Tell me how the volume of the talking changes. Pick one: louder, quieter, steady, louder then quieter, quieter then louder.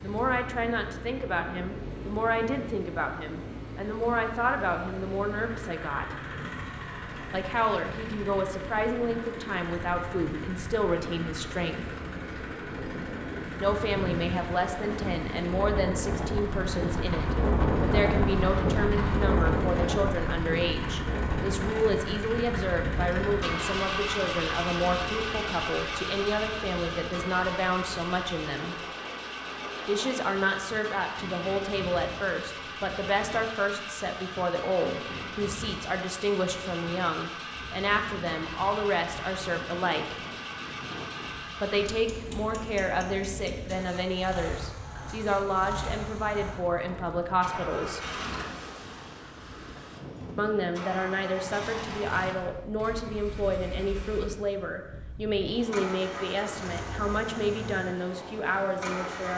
steady.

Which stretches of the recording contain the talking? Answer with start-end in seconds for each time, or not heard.
0.0-6.2, 7.3-11.8, 13.6-28.8, 29.9-40.2, 41.6-48.0, 50.4-59.3.